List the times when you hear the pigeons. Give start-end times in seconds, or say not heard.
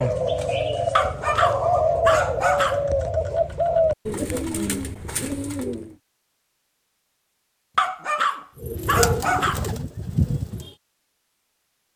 0.0-6.0, 8.6-10.7.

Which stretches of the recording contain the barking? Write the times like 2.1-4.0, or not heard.
0.9-2.9, 7.8-9.7.